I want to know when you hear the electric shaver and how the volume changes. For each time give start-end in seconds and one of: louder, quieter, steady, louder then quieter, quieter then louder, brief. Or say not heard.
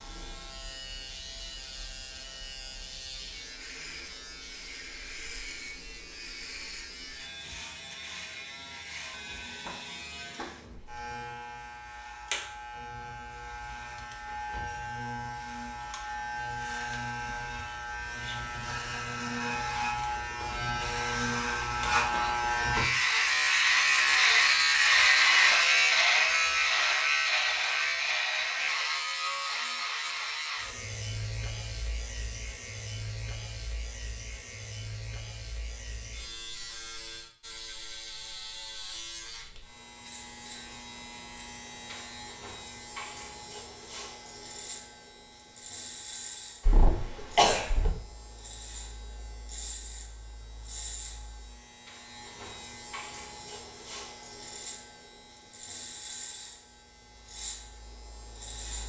0.0-58.8 louder then quieter.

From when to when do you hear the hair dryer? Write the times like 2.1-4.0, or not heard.
not heard.